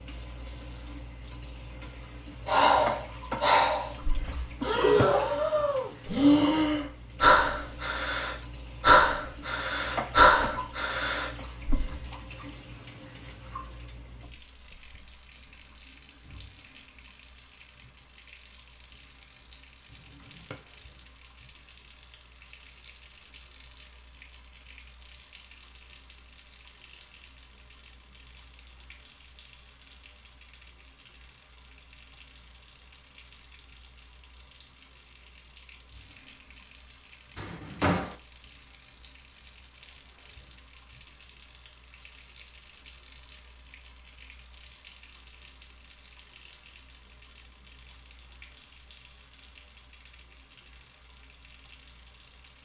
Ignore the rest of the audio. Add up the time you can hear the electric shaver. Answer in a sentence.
The electric shaver can't be heard in this clip.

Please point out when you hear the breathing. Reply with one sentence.
You can hear the breathing from 2.5 to 12.1 s.